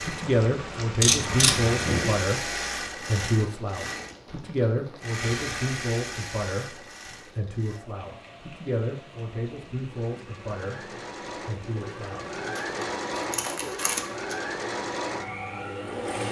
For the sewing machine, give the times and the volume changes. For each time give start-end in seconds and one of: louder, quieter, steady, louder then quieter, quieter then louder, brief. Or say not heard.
0.0-16.2 quieter then louder.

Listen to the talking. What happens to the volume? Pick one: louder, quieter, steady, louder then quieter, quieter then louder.
quieter.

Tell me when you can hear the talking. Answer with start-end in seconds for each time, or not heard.
0.0-12.3.